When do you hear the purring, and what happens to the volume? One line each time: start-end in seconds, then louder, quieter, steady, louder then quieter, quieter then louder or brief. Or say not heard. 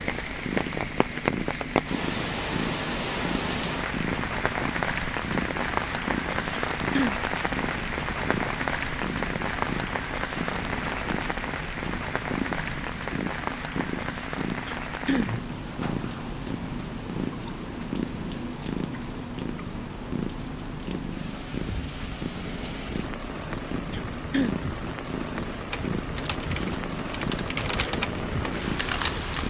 0.0-29.4 steady.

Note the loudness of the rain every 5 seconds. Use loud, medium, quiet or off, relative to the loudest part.
loud, loud, loud, medium, medium, medium.